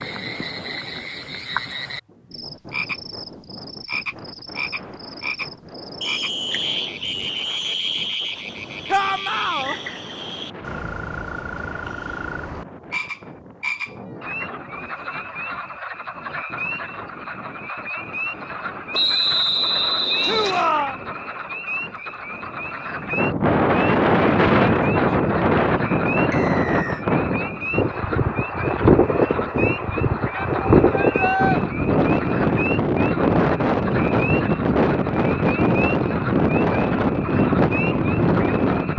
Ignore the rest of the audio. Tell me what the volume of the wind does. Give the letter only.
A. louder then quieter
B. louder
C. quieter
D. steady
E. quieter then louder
B.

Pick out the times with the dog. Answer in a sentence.
You can't hear the dog here.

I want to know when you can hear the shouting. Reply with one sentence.
You can hear the shouting from 8.8 to 9.8 s, from 20.2 to 20.9 s and from 30.4 to 31.6 s.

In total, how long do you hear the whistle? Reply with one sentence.
The whistle can be heard for 5 seconds in total.